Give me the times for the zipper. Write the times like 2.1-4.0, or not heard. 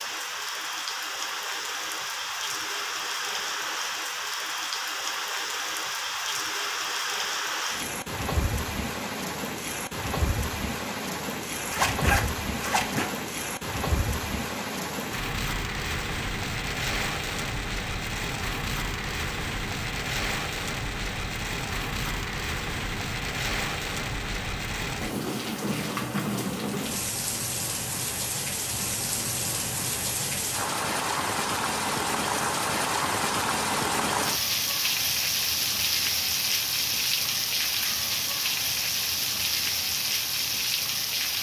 11.7-13.1.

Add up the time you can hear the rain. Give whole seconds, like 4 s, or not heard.
41 s.